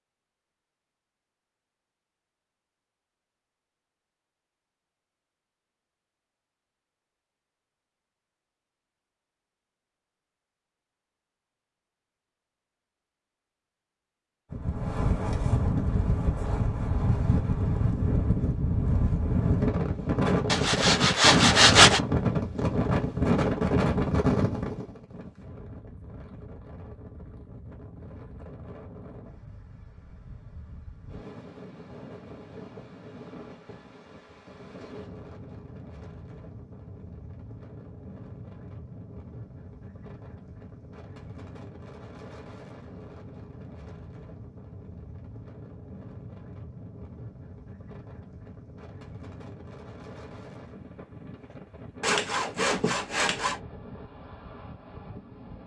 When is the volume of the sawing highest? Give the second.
22 s.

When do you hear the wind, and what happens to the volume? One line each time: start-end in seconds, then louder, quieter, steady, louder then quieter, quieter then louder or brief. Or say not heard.
14.5-55.6 quieter.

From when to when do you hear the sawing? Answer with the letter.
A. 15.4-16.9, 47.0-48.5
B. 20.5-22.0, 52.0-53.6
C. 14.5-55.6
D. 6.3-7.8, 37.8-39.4
B.